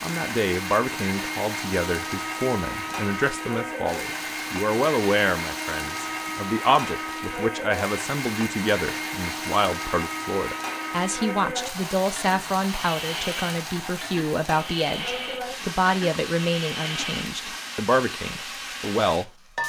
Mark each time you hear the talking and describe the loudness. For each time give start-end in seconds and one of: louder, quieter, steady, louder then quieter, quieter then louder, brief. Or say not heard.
0.0-19.3 steady.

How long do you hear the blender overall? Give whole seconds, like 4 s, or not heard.
18 s.